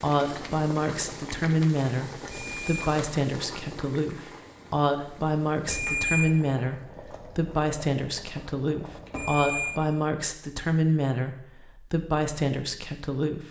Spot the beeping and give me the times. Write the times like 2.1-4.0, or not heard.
2.3-2.9, 5.7-6.3, 9.1-9.8.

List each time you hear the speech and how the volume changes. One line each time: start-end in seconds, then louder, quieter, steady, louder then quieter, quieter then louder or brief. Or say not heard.
0.0-13.4 steady.